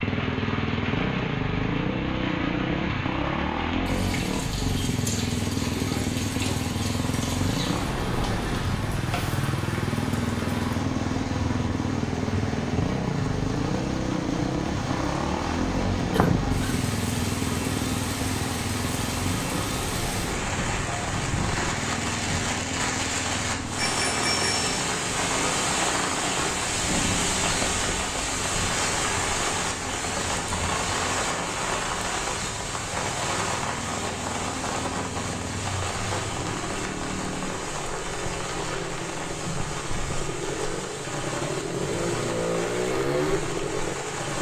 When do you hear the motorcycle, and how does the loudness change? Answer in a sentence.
You can hear the motorcycle from 0.0 to 44.3 s, getting quieter then louder.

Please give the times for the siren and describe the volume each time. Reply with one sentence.
You can't hear the siren here.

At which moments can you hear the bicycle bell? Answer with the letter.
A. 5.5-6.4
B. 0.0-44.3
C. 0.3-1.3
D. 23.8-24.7
D.